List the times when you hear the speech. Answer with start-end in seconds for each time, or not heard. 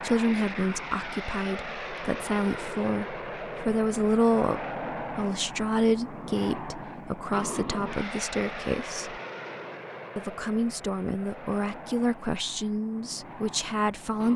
0.0-9.2, 10.2-14.3.